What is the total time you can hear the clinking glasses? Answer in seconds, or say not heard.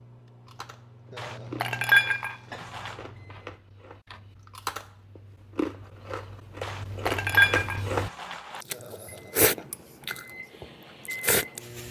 4 s.